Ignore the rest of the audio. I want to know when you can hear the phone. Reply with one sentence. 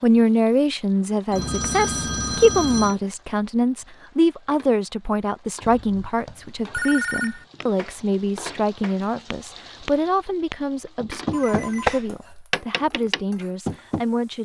You can hear the phone from 1.3 to 3.0 s, from 5.6 to 7.5 s and from 11.3 to 12.0 s.